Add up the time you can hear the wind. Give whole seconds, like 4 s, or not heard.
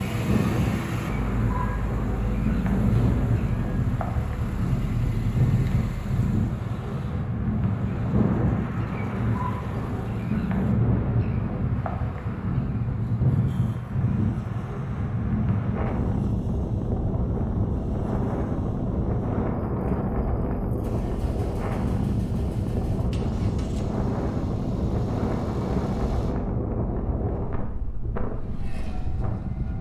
30 s.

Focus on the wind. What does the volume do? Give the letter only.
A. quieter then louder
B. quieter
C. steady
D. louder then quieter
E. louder
C.